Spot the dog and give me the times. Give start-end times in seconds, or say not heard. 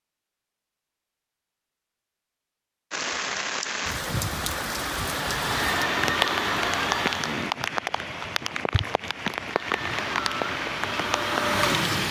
not heard.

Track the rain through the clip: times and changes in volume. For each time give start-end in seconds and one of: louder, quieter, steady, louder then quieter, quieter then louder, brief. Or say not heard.
2.9-12.0 steady.